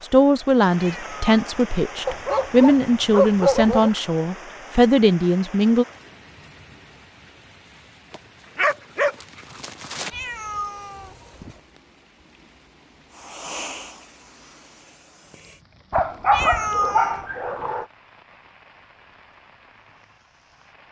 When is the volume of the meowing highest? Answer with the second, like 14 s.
17 s.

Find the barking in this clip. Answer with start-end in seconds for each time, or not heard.
2.0-3.9, 8.1-10.1, 15.9-17.9.